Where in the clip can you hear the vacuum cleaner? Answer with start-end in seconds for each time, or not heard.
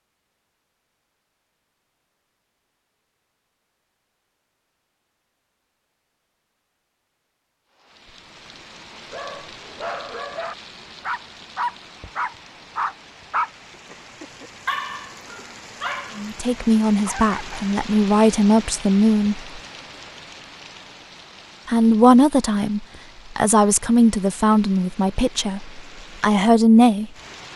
not heard.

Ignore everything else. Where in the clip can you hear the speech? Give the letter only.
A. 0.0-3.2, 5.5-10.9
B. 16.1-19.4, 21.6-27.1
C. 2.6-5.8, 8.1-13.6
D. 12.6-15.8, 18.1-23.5
B.